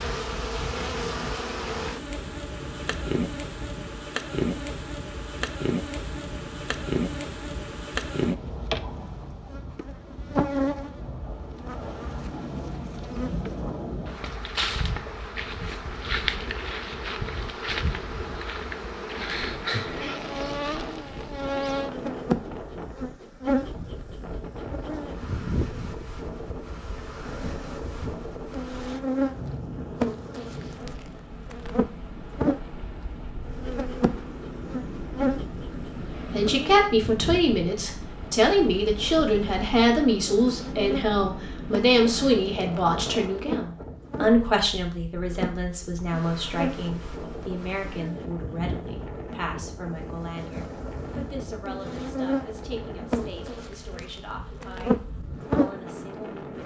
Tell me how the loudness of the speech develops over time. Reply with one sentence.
The volume of the speech goes down.